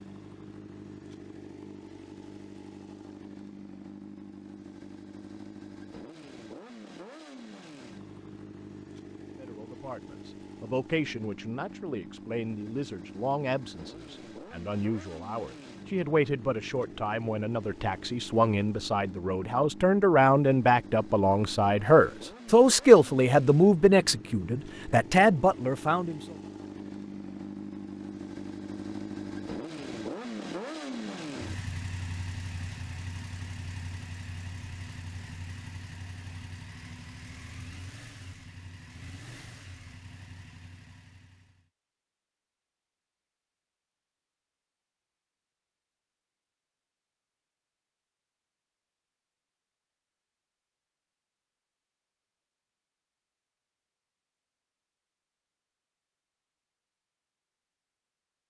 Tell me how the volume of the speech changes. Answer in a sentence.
The loudness of the speech goes up.